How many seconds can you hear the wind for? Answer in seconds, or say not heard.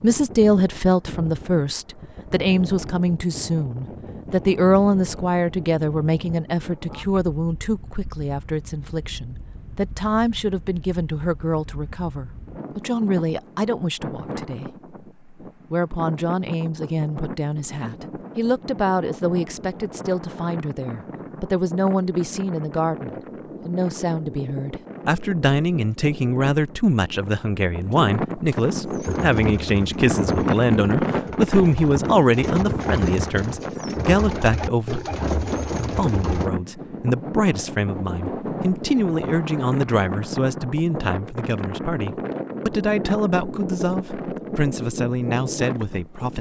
46 s.